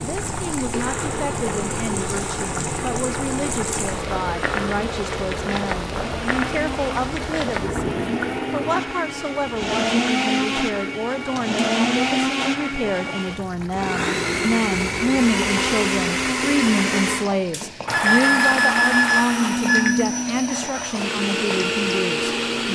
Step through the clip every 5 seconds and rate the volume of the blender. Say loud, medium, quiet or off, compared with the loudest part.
medium, medium, loud, loud, loud.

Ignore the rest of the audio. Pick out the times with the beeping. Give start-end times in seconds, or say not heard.
17.9-19.9.